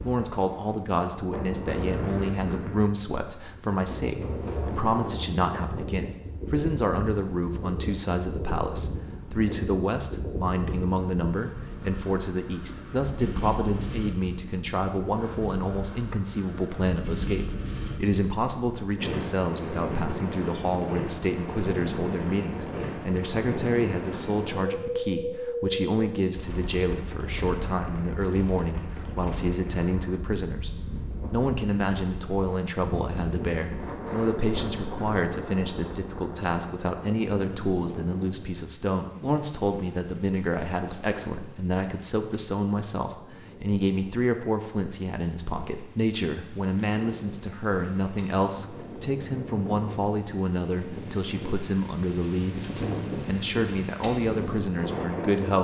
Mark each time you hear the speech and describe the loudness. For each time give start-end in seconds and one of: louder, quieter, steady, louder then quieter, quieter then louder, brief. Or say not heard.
0.0-55.5 steady.